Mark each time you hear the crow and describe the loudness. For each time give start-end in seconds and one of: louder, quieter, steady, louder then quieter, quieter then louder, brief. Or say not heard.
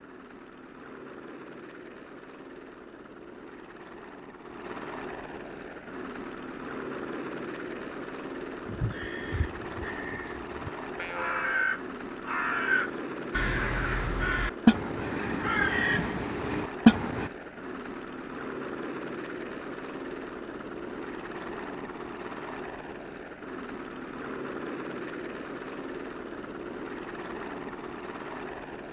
8.7-17.3 louder.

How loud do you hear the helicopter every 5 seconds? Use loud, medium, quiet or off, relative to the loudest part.
medium, loud, loud, loud, loud, loud.